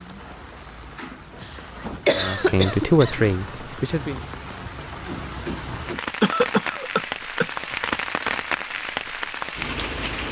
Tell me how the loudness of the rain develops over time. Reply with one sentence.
The loudness of the rain goes up.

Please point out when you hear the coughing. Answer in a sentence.
You can hear the coughing from 2.0 to 3.2 s and from 6.2 to 7.5 s.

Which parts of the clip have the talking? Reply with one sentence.
You can hear the talking from 2.1 to 4.2 s.